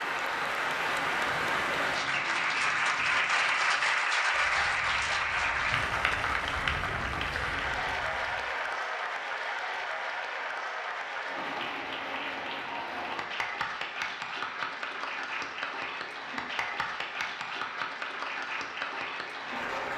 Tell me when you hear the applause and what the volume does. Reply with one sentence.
You can hear the applause from 0.0 to 19.9 s, getting quieter.